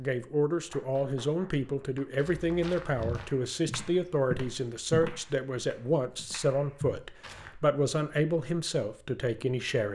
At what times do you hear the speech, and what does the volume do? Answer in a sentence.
The speech can be heard from 0.0 to 9.9 s, at a steady volume.